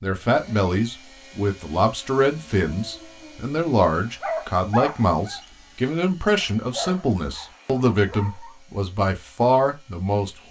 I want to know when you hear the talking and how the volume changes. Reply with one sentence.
The talking can be heard from 0.0 to 10.4 s, at a steady volume.